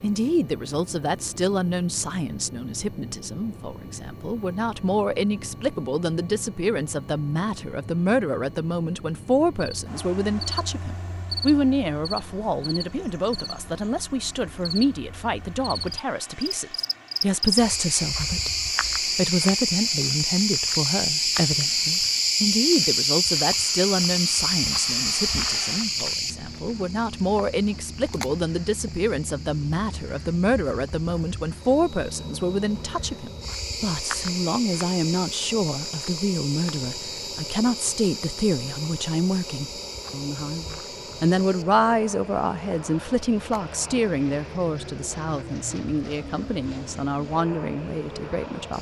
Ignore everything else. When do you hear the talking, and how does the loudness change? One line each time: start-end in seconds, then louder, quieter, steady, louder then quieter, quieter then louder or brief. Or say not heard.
0.0-48.7 steady.